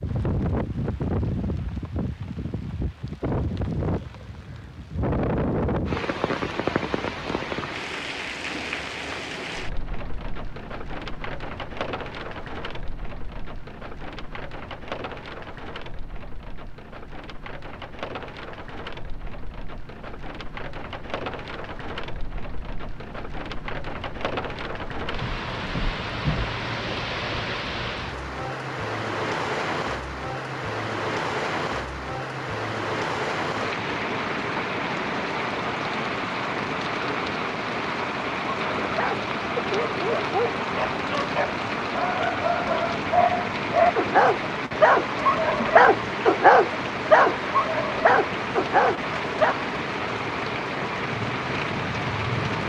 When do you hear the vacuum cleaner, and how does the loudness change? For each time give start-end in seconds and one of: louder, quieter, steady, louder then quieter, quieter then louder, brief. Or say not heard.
not heard.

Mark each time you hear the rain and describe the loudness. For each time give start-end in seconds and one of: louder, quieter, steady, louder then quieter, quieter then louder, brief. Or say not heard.
0.0-52.6 quieter then louder.